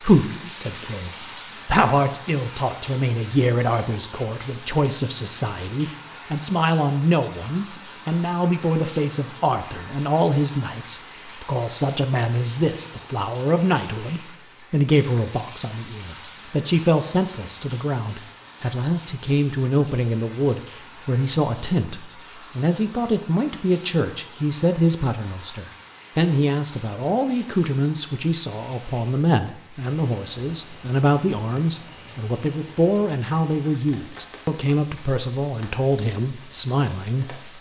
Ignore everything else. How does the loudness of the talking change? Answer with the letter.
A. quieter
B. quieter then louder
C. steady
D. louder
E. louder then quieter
C.